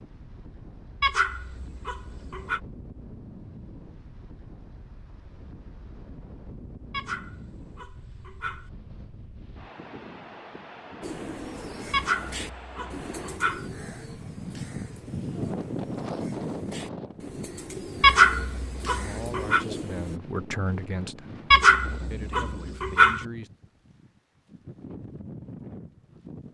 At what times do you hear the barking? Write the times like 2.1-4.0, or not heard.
1.0-2.6, 6.9-8.7, 11.9-13.7, 18.0-19.6, 21.5-23.2.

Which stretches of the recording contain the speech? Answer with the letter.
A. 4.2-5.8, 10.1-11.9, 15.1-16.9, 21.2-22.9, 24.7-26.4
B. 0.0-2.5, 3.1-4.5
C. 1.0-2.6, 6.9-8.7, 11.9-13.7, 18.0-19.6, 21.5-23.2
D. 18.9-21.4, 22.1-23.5
D.